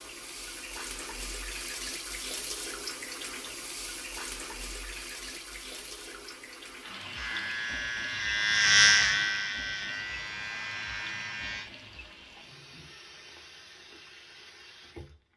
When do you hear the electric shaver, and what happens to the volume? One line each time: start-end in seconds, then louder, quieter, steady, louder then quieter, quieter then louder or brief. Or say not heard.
7.1-11.7 louder then quieter.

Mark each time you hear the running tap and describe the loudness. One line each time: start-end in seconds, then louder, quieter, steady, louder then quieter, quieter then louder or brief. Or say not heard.
0.0-15.3 quieter.